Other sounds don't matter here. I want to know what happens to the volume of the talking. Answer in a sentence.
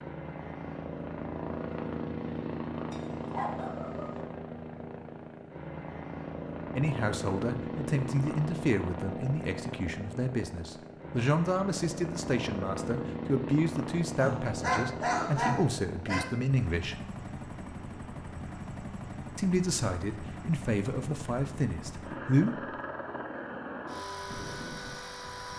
The loudness of the talking stays about the same.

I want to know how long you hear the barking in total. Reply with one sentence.
You can hear the barking for 3 seconds altogether.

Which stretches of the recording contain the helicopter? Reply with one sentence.
You can hear the helicopter from 0.0 to 25.5 s.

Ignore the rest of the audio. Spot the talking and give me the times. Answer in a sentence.
The talking can be heard from 6.8 to 16.9 s and from 19.4 to 22.6 s.